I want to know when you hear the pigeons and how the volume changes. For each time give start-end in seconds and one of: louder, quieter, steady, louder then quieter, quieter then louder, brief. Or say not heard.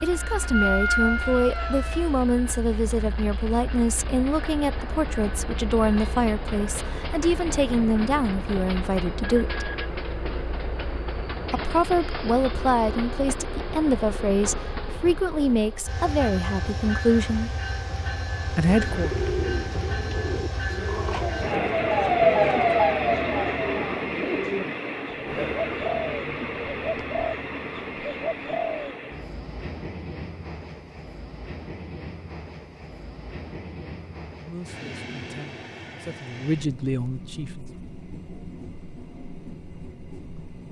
18.6-28.9 steady.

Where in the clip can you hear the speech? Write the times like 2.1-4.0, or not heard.
0.0-9.7, 11.5-17.5, 18.4-19.1, 34.4-37.7.